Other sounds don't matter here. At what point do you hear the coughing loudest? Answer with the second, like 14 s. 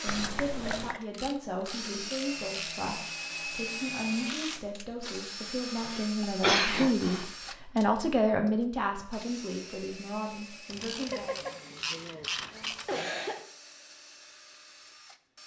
7 s.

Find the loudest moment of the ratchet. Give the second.
12 s.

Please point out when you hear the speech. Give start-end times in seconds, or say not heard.
0.0-11.3.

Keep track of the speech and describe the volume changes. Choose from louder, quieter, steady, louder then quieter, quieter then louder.
louder then quieter.